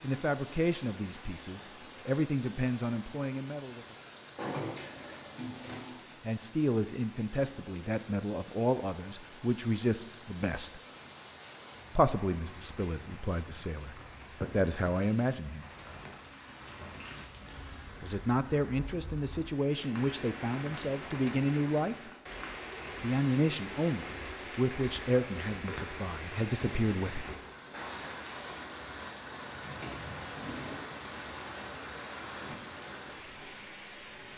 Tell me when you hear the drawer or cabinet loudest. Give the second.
5 s.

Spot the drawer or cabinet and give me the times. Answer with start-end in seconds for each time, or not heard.
4.3-6.0, 29.8-30.8.